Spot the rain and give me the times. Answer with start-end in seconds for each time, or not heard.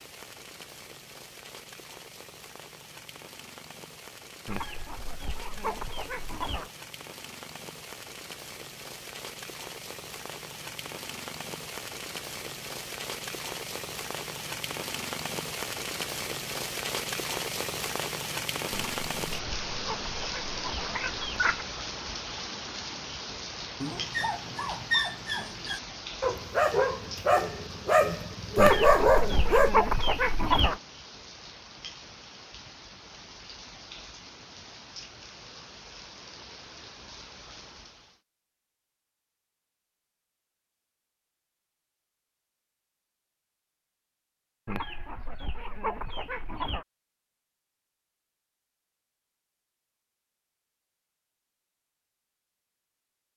0.0-38.2.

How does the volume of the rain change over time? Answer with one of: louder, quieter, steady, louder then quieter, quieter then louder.
louder then quieter.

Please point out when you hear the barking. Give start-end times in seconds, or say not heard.
23.8-29.7.